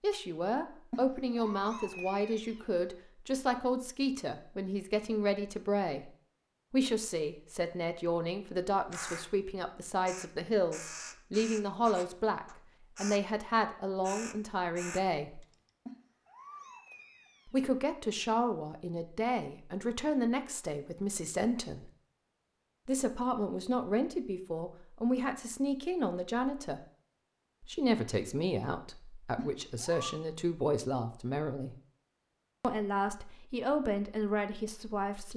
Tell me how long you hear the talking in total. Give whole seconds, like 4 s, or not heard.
30 s.